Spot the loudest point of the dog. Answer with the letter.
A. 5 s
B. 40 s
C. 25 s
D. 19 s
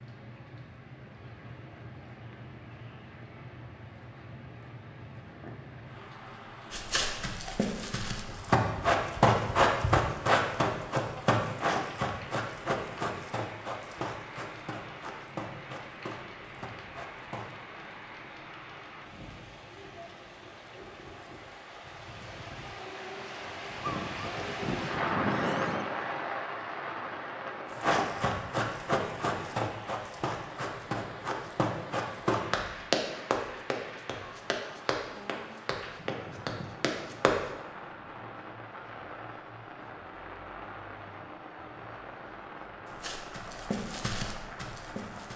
C.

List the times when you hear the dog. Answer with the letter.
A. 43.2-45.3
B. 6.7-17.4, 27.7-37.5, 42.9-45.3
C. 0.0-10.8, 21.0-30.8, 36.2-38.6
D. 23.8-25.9
D.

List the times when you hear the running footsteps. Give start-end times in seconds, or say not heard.
6.7-17.4, 27.7-37.5, 42.9-45.3.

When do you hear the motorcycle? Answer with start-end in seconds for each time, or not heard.
not heard.